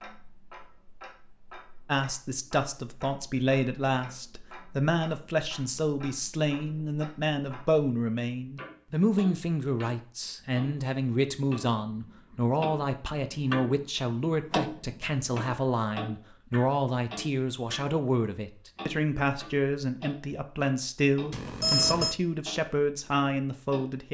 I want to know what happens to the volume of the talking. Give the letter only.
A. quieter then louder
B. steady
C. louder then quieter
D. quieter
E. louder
B.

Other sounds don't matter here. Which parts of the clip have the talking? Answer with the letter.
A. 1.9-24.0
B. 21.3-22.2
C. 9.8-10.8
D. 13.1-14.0
A.